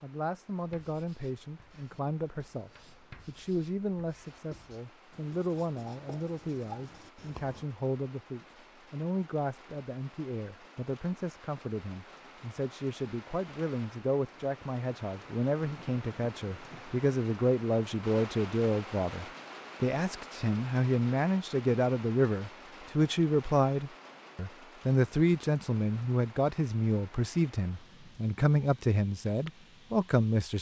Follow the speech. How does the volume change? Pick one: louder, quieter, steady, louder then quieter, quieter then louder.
louder.